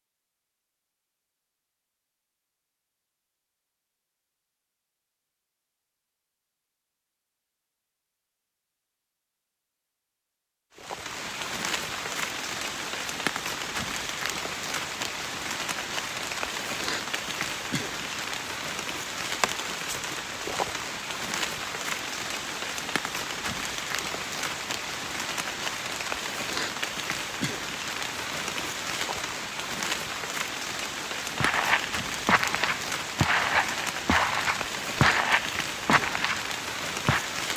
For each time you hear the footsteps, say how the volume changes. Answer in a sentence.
The footsteps can be heard from 31.4 to 37.3 s, at a steady volume.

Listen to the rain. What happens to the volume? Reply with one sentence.
The loudness of the rain stays about the same.